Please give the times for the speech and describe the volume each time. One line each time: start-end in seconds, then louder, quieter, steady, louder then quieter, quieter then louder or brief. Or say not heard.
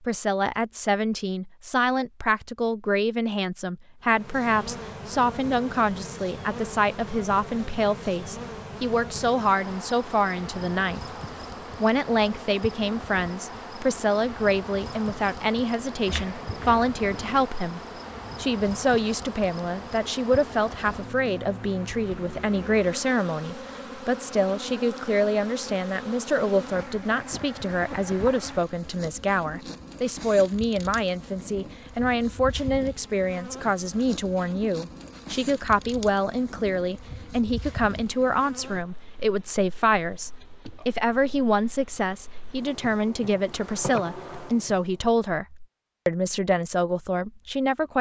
0.1-11.0 steady
11.8-47.9 steady.